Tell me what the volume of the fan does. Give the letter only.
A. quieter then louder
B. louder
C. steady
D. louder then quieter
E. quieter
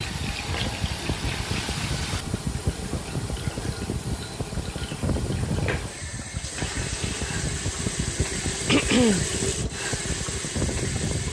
C.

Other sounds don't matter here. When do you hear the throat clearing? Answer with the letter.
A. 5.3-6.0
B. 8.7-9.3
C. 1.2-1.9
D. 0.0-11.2
B.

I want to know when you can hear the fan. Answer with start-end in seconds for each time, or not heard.
0.0-11.2.